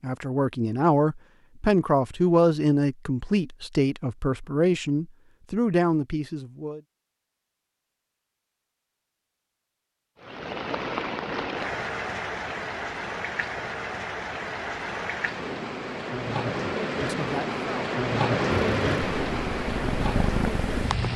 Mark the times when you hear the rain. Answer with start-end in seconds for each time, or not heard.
10.2-21.1.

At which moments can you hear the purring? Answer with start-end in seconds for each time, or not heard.
18.5-21.1.